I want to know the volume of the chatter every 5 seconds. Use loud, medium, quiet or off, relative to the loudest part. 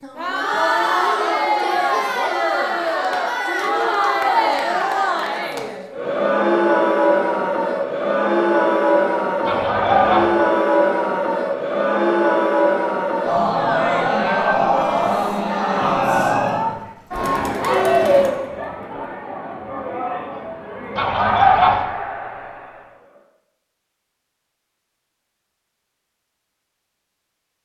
loud, loud, loud, loud, quiet, off.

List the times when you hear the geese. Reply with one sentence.
You can hear the geese from 9.4 to 10.3 s and from 20.9 to 21.9 s.